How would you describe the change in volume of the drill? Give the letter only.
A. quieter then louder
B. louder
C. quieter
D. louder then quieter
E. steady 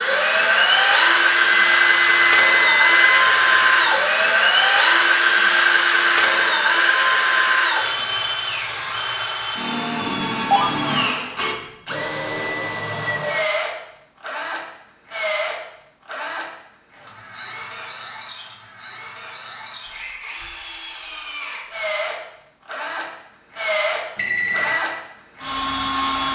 A.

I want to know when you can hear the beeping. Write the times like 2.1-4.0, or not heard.
1.3-4.0, 10.0-11.1, 24.1-24.8.